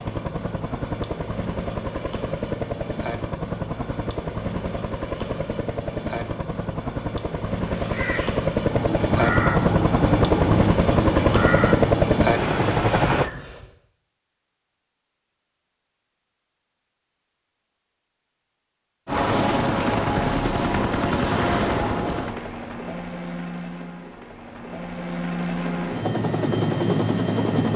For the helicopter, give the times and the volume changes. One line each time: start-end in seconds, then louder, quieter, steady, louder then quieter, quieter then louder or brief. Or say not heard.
0.0-13.3 louder
19.1-27.7 quieter then louder.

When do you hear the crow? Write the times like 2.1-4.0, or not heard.
7.7-13.7.